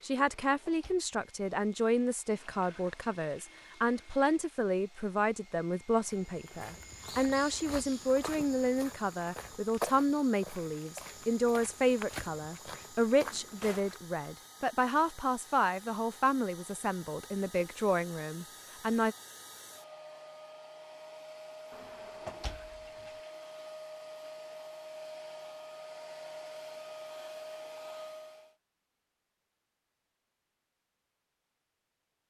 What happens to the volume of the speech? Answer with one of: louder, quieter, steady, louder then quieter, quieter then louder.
steady.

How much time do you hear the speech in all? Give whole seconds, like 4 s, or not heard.
19 s.